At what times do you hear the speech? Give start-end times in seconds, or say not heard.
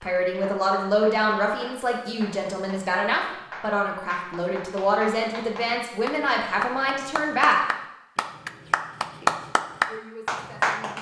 0.0-7.6, 9.2-10.9.